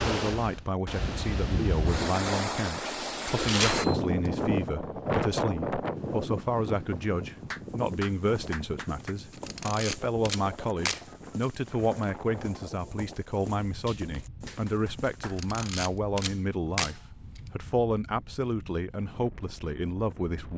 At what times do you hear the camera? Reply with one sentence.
The camera can be heard from 3.5 to 4.0 s, from 9.3 to 11.1 s and from 15.2 to 17.4 s.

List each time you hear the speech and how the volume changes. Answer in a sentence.
You can hear the speech from 0.1 to 20.5 s, at a steady volume.